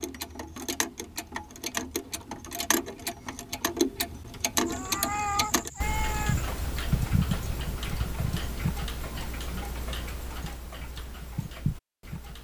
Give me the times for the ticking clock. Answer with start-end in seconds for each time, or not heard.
0.0-12.3.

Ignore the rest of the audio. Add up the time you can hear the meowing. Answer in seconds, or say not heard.
2 s.